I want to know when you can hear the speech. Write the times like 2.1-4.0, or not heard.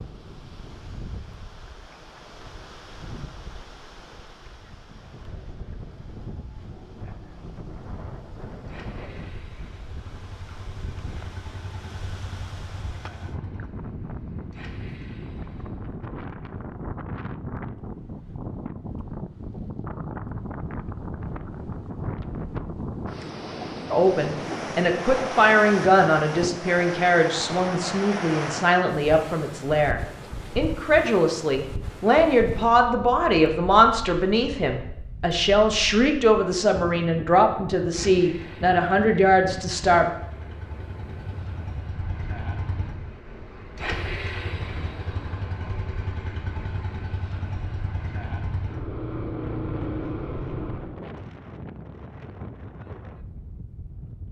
23.9-40.1.